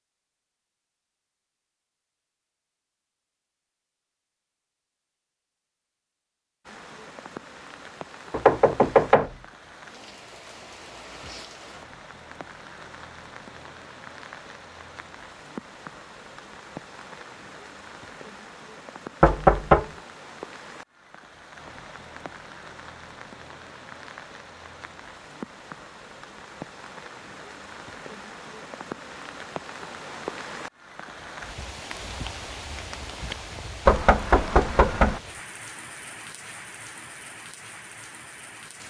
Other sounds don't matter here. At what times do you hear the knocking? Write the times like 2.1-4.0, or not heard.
8.3-9.3, 19.2-19.9, 33.9-35.2.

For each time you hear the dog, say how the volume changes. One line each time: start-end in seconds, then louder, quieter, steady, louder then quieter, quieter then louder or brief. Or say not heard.
not heard.